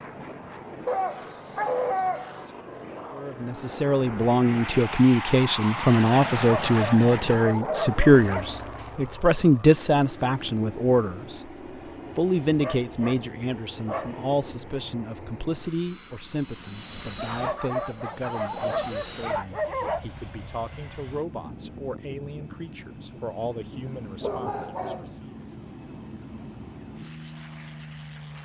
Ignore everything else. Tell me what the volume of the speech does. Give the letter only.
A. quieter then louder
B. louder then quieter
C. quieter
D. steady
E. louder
C.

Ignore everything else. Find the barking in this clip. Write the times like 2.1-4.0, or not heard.
0.8-2.5, 6.3-8.4, 12.6-14.2, 17.1-20.1, 24.2-25.6.